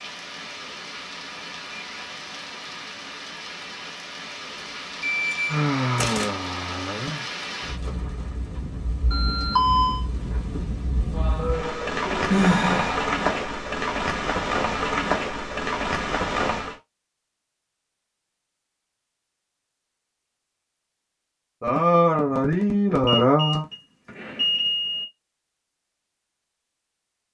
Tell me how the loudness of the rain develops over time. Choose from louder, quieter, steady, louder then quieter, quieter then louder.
louder.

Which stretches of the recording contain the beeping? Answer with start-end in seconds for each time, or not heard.
5.0-6.3, 9.1-10.1, 23.1-25.1.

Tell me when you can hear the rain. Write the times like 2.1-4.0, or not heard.
0.0-16.8.